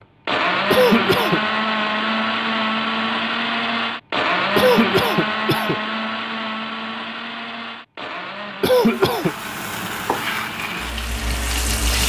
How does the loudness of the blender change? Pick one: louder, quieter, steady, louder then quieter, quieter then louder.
quieter.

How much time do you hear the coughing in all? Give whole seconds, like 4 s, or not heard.
3 s.